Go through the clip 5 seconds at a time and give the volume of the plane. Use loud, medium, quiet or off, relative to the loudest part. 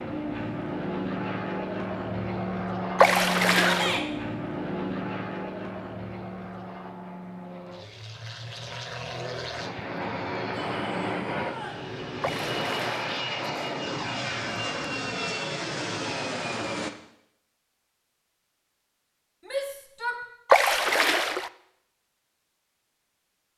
loud, medium, loud, loud, off.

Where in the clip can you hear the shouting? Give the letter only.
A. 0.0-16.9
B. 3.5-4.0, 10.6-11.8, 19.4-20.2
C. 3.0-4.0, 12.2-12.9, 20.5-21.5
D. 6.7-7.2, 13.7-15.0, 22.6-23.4
B.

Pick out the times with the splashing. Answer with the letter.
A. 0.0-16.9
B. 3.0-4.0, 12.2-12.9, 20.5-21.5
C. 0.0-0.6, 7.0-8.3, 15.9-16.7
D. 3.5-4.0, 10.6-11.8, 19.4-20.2
B.